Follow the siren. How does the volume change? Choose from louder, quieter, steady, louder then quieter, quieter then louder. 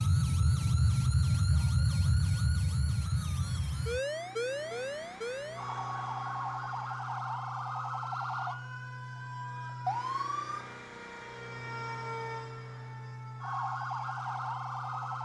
quieter.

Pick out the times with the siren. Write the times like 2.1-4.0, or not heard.
0.0-15.2.